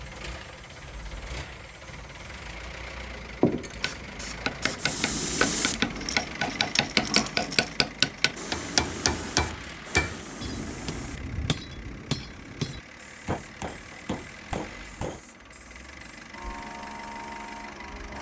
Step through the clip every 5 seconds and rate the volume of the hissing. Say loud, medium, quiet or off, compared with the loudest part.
loud, loud, medium, medium.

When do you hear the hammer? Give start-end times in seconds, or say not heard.
3.8-15.2.